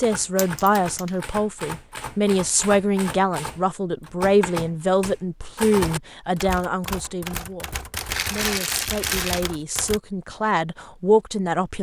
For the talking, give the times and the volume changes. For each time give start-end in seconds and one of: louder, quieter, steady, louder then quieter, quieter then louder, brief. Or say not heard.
0.0-11.7 quieter then louder.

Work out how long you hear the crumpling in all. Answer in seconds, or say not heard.
2 s.